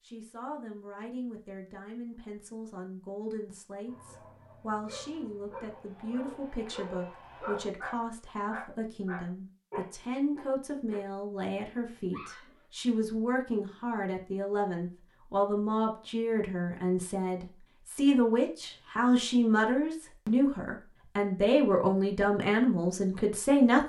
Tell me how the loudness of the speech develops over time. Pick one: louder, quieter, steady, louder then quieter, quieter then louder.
louder.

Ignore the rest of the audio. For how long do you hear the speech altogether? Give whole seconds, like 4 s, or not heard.
24 s.